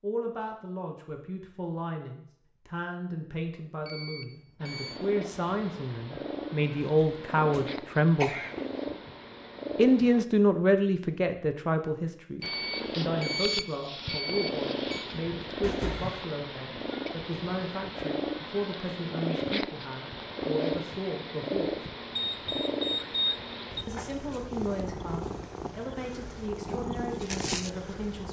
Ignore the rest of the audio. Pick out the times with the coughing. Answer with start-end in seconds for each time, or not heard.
6.8-8.7, 15.6-16.2.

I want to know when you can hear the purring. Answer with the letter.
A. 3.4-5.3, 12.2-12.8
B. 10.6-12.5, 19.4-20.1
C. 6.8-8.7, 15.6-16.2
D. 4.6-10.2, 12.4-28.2
D.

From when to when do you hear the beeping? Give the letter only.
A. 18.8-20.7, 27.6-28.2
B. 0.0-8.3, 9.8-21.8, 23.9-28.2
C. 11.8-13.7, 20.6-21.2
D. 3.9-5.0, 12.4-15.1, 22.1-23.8
D.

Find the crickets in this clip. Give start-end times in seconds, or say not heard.
not heard.